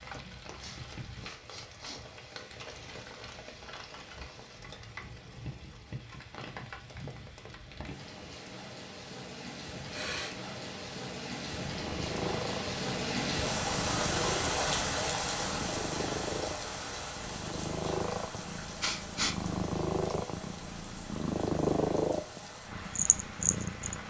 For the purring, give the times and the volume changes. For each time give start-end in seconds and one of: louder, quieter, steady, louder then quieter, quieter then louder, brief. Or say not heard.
11.6-24.0 louder.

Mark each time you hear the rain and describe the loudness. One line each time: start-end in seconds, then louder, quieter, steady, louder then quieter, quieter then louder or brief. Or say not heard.
0.0-24.0 louder then quieter.